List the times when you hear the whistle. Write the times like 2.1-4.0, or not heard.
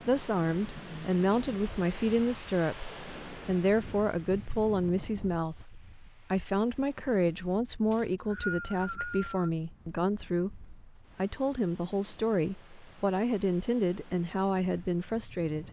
7.9-9.5.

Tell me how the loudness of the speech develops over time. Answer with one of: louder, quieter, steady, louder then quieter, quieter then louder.
steady.